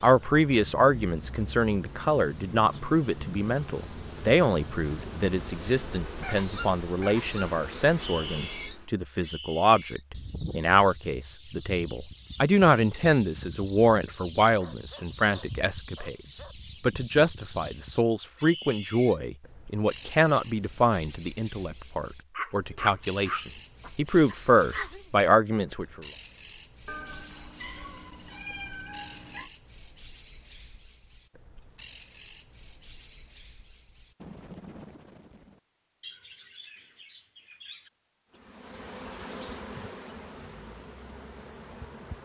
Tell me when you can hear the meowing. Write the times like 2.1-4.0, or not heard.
26.9-29.5.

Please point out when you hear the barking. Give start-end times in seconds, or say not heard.
14.6-16.6, 22.4-25.1.